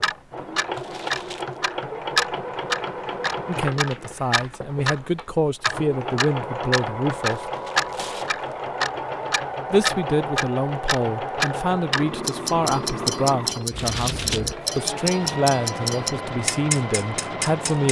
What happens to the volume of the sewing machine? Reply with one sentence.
The loudness of the sewing machine stays about the same.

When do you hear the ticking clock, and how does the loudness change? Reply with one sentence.
You can hear the ticking clock from 0.0 to 17.8 s, at a steady volume.